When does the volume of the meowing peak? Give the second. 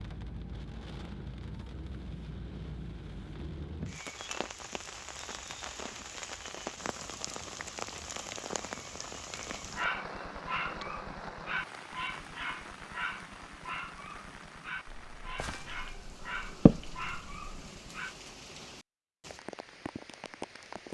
17 s.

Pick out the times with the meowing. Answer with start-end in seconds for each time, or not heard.
14.8-17.4.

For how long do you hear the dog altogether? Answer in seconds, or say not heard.
9 s.